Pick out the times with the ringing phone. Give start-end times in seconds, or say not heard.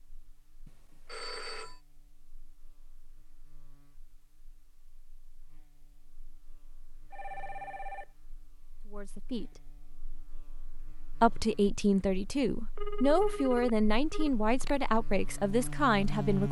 0.7-1.8, 7.1-8.1, 12.8-14.3.